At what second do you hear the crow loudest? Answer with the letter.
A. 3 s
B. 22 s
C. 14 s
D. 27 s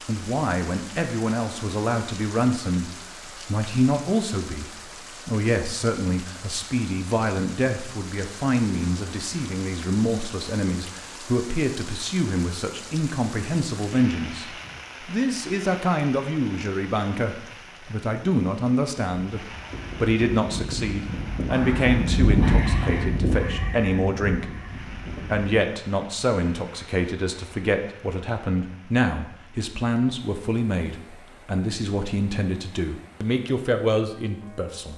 B.